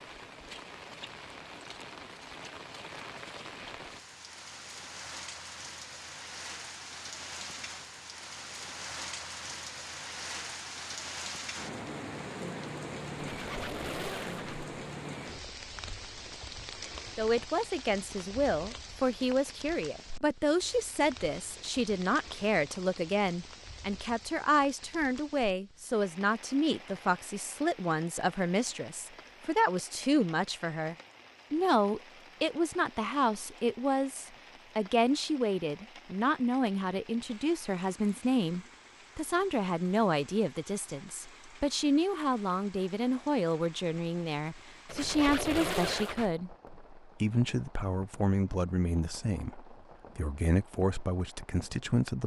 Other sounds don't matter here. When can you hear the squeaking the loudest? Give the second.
46 s.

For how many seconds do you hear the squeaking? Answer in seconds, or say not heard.
3 s.